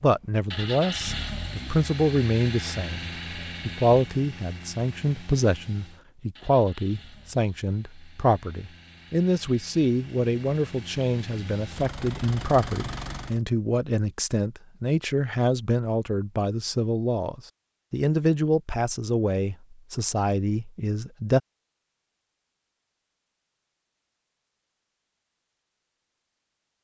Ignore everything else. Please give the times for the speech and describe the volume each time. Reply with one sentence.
The speech can be heard from 0.0 to 21.4 s, at a steady volume.